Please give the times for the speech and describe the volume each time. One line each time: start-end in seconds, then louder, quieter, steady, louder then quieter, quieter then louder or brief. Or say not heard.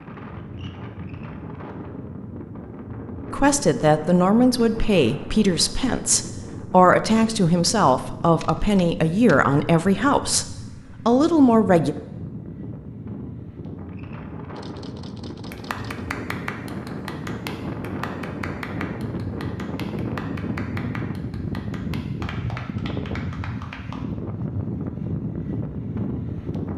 3.3-11.9 steady.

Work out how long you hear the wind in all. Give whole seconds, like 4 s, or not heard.
27 s.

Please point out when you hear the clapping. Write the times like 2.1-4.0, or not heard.
15.5-24.0.